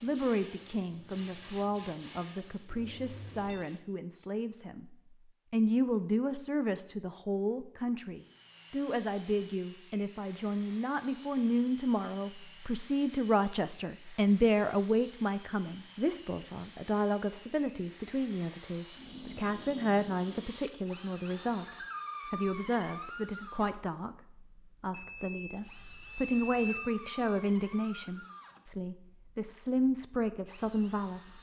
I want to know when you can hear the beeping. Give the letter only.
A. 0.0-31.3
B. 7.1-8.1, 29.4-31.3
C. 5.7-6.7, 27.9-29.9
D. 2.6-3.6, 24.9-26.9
D.